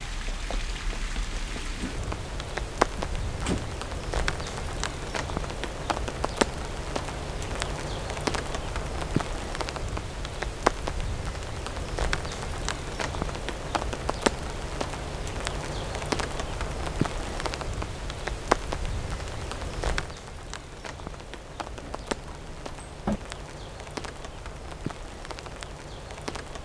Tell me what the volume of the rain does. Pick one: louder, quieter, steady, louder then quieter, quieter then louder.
quieter.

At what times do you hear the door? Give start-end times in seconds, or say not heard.
3.0-3.7, 21.8-23.2.